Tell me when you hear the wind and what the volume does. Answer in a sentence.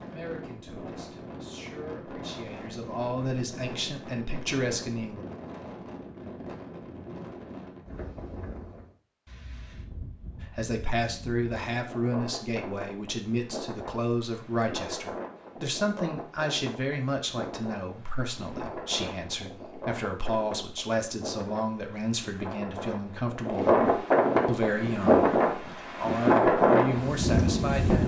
You can hear the wind from 0.0 to 28.0 s, getting louder.